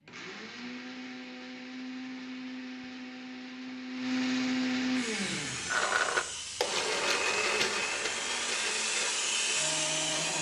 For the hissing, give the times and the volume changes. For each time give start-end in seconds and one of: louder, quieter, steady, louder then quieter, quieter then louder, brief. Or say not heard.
5.0-10.3 louder.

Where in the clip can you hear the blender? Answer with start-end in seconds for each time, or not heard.
0.0-10.3.